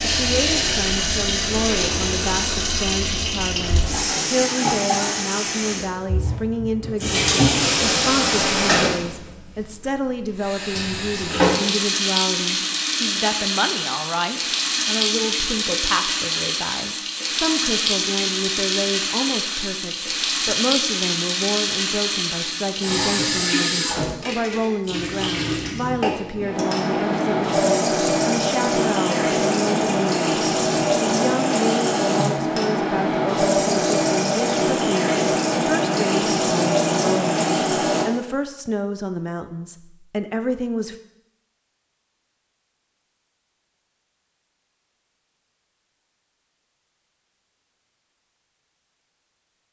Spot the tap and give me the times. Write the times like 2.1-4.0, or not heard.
0.0-38.0.